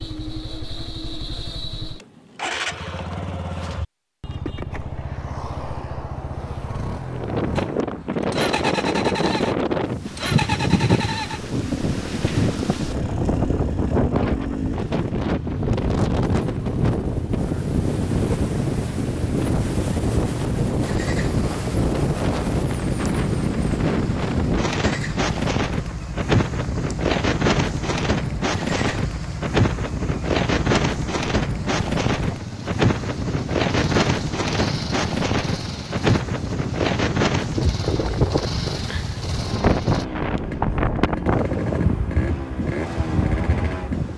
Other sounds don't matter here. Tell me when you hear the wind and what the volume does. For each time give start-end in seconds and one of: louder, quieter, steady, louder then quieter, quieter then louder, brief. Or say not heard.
7.1-44.1 steady.